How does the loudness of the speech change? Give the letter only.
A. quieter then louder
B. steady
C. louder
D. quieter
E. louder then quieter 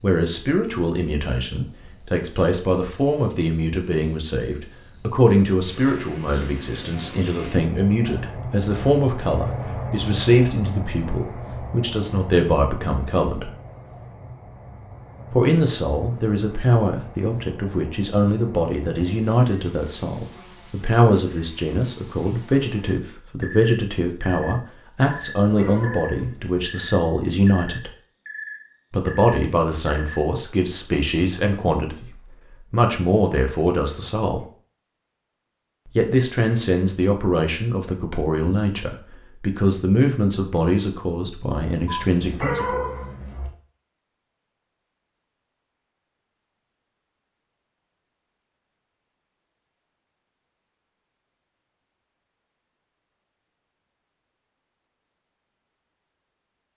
B.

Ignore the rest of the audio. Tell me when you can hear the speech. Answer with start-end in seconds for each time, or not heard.
0.0-13.5, 15.3-27.9, 28.9-34.5, 36.0-42.8.